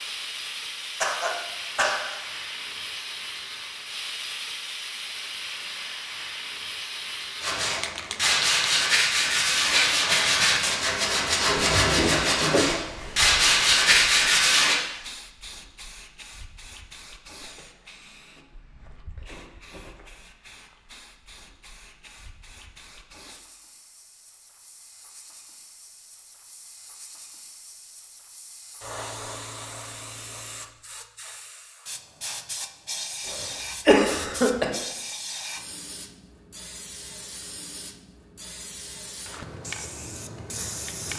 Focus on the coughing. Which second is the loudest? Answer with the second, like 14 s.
34 s.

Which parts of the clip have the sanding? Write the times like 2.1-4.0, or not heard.
7.4-14.8.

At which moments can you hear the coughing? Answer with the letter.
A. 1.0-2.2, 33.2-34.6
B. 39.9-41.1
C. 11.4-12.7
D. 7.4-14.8
A.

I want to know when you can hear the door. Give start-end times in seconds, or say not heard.
11.4-12.7.